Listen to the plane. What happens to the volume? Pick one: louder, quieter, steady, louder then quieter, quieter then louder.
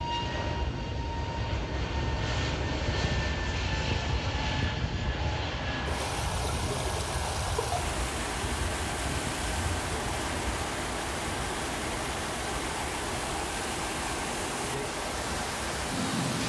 quieter.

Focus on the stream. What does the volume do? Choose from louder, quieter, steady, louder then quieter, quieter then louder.
steady.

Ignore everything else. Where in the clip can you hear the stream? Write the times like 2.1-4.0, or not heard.
5.5-16.4.